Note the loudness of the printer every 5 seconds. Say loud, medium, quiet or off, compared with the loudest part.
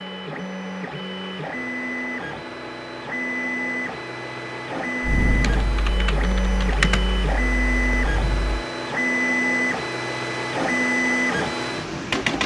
medium, loud, loud.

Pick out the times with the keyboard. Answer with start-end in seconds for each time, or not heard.
5.0-8.7.